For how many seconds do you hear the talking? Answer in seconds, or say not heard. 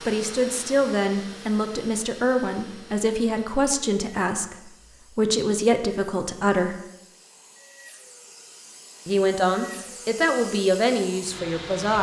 10 s.